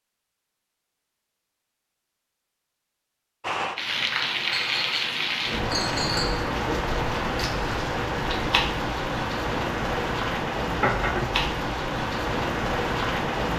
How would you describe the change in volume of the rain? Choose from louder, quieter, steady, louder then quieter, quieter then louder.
steady.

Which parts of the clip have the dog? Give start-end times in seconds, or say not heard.
not heard.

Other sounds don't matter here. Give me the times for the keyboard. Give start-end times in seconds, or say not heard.
not heard.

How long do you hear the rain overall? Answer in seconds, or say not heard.
10 s.